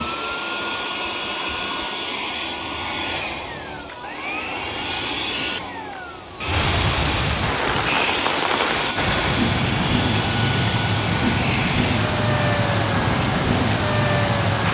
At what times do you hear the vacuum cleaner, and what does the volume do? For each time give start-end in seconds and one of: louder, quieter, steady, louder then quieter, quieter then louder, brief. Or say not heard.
0.0-14.6 steady.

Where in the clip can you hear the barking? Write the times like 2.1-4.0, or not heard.
not heard.